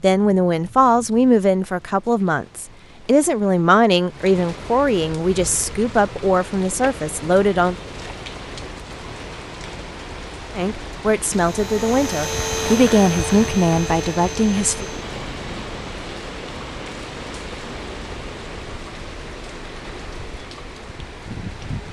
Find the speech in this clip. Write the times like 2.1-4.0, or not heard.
0.0-7.8, 10.6-14.8.